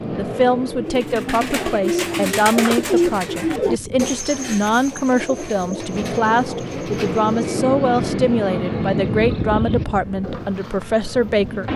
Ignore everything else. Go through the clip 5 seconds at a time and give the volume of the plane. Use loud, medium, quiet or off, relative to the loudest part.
medium, loud, medium.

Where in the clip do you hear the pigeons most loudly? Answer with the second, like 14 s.
3 s.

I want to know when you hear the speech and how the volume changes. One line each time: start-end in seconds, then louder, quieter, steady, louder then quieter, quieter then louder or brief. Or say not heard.
0.1-11.7 steady.